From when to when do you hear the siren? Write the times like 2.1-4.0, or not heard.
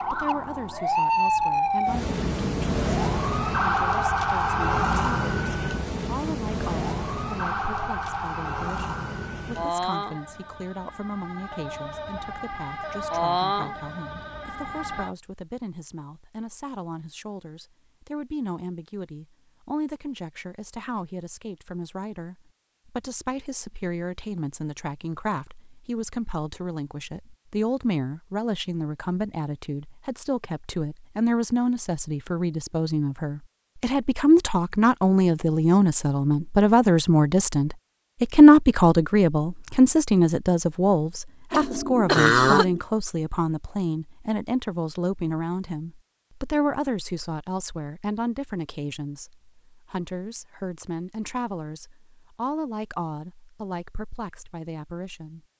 0.0-15.1.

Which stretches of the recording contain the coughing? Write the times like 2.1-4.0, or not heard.
41.5-42.8.